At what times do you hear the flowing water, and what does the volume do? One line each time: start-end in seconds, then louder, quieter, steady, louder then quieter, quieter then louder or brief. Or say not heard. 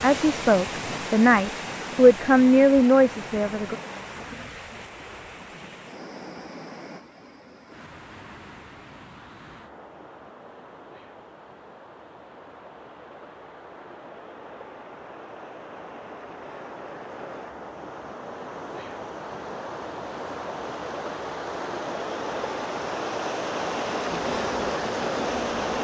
0.0-25.7 quieter then louder.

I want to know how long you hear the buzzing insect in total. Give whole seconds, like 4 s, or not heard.
2 s.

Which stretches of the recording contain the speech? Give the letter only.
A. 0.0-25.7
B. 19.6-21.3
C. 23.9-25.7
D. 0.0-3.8
D.